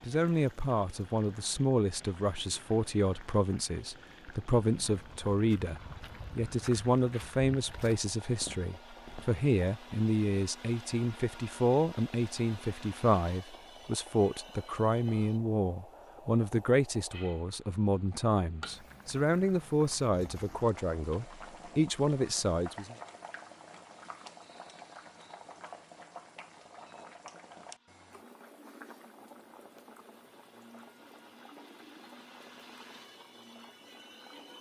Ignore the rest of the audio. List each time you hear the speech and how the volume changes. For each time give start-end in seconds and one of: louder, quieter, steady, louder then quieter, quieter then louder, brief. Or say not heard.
0.0-22.9 steady.